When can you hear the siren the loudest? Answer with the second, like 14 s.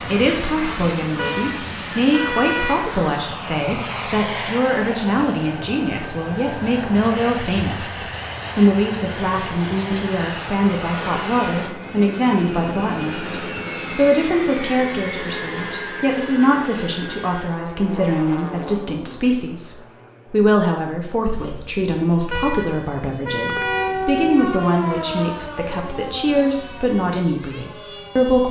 24 s.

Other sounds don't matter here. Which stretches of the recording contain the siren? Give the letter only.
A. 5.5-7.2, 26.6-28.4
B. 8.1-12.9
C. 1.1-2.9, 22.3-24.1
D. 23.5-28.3
D.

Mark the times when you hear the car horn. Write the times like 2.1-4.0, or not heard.
1.1-2.9, 22.3-24.1.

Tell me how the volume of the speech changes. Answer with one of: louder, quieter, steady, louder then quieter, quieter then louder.
steady.